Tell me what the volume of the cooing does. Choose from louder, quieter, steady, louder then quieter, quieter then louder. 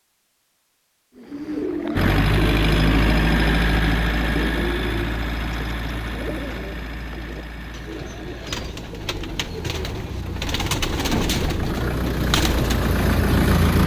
quieter then louder.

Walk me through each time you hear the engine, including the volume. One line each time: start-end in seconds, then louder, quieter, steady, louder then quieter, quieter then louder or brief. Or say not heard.
1.9-13.8 quieter then louder.